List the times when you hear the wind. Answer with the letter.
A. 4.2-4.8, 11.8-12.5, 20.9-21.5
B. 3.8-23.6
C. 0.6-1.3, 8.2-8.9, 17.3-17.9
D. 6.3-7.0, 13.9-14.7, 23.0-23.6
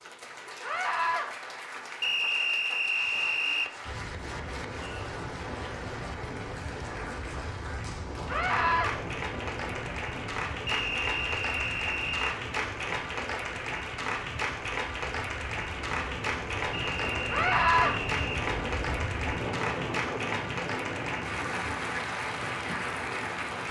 B.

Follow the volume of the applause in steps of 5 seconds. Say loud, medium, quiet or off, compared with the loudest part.
medium, medium, loud, loud, loud.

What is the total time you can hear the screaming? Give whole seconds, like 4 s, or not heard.
2 s.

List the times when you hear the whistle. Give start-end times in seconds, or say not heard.
2.0-3.7, 10.7-12.3, 16.8-18.4.